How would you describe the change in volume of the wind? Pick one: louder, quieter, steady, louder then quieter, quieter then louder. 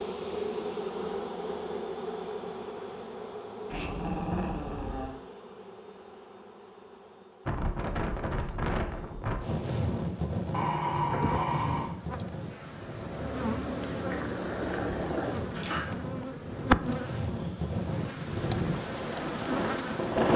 quieter then louder.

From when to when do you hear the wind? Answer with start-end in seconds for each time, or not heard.
7.5-20.3.